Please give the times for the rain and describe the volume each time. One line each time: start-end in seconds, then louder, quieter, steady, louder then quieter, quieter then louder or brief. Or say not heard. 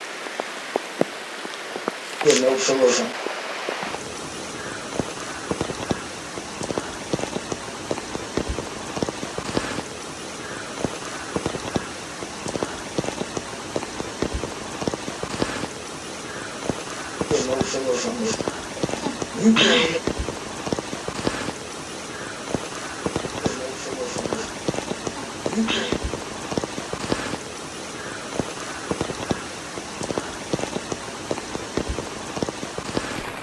0.0-33.3 steady.